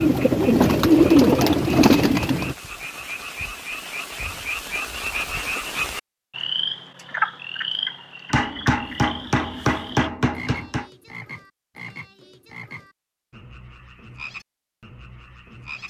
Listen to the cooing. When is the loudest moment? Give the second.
1 s.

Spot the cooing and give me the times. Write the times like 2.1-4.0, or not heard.
0.0-2.5.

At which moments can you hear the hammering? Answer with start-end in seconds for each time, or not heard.
8.3-10.8.